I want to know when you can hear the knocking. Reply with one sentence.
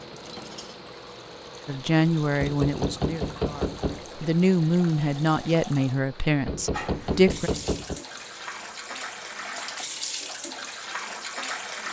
The knocking can be heard from 2.4 to 4.2 s and from 6.5 to 8.0 s.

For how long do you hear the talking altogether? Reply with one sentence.
The talking can be heard for 6 seconds in total.